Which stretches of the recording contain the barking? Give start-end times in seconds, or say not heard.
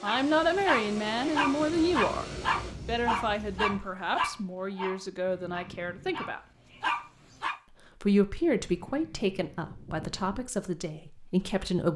0.1-7.6.